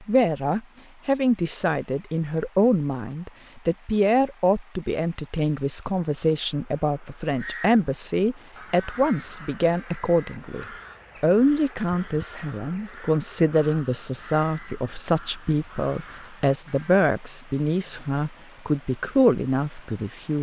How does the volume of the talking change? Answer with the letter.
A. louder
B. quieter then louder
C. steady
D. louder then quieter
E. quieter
C.